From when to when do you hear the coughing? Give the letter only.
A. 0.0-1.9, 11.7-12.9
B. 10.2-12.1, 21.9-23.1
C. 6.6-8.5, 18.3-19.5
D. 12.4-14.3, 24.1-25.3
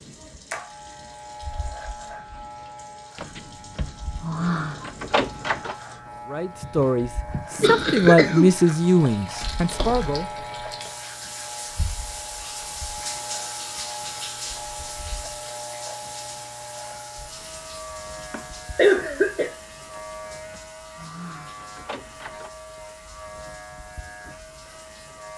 C.